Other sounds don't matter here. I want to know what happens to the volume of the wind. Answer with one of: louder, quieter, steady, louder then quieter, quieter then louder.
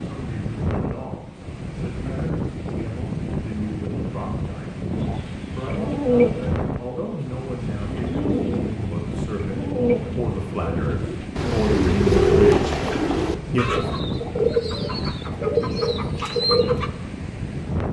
steady.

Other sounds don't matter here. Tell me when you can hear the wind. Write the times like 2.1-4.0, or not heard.
0.0-17.8.